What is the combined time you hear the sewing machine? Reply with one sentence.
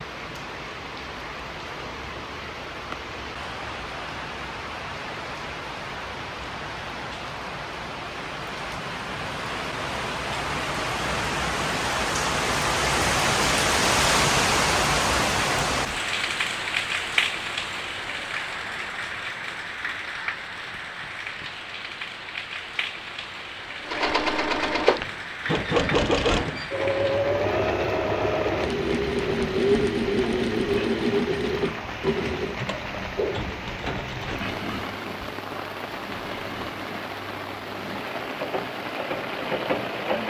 The sewing machine can be heard for 16 seconds in total.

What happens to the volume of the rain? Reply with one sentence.
The loudness of the rain goes up, then down.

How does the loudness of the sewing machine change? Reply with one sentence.
The loudness of the sewing machine goes down.